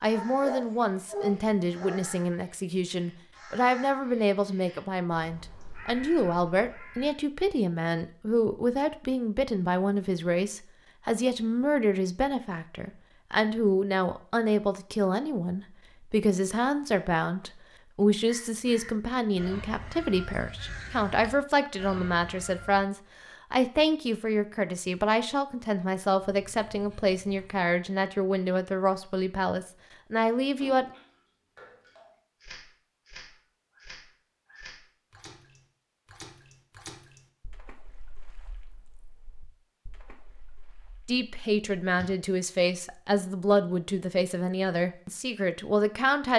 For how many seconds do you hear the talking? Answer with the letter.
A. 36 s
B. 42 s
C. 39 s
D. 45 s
A.